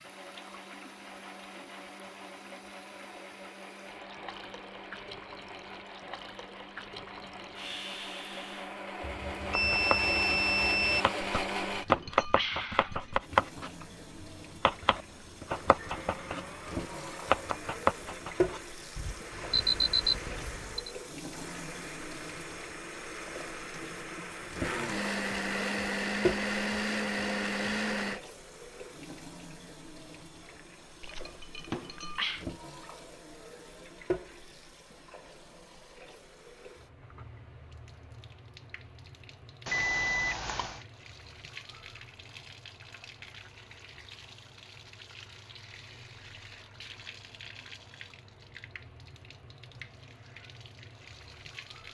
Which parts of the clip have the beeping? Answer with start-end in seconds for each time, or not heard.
9.0-11.1, 18.9-20.9, 39.6-40.8.